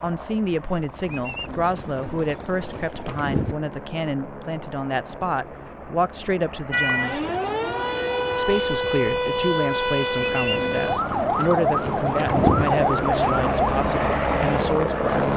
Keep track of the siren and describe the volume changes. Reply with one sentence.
The volume of the siren stays about the same.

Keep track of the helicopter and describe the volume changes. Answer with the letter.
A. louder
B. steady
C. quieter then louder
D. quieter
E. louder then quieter
A.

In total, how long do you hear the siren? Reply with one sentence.
The siren can be heard for 7 seconds in total.